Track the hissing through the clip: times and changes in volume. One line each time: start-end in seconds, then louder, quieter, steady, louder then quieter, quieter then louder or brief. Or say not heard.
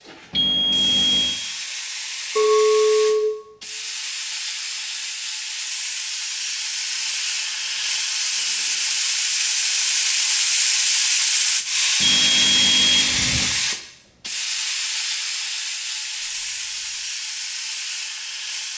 0.0-18.7 louder then quieter.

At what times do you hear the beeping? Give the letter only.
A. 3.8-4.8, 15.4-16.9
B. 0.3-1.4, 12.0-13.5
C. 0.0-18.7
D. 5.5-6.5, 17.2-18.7
B.